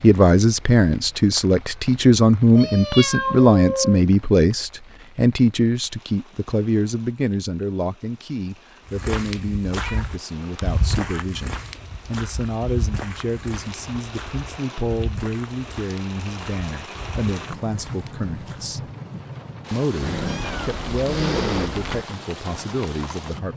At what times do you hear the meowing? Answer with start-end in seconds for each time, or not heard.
2.5-4.0, 9.8-11.2, 20.0-22.1.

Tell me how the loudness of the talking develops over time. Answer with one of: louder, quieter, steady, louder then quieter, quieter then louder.
quieter.